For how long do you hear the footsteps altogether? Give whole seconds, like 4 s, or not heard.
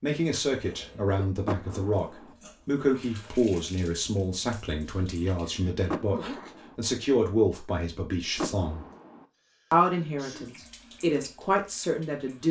not heard.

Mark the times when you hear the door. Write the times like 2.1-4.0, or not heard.
1.4-2.3, 5.8-6.8, 8.3-9.2.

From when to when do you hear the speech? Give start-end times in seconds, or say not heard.
0.0-8.8, 9.7-12.4.